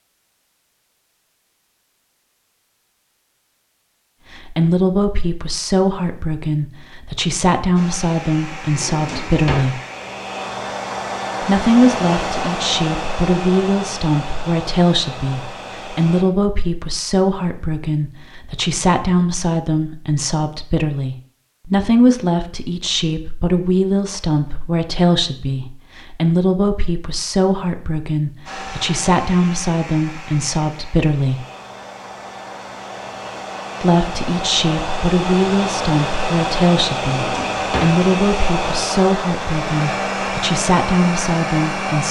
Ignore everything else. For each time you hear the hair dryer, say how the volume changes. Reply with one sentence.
You can hear the hair dryer from 7.8 to 16.2 s, getting louder then quieter; and from 28.4 to 42.0 s, getting louder.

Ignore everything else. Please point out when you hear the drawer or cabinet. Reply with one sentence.
You can hear the drawer or cabinet from 8.7 to 9.7 s and from 37.1 to 38.0 s.